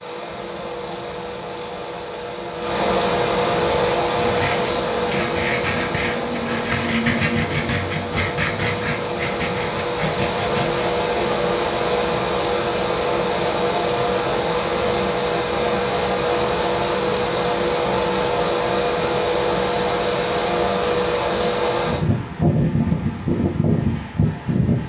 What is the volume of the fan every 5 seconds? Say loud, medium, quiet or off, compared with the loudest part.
loud, medium, loud, loud, loud.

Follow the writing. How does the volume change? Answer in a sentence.
The loudness of the writing goes up, then down.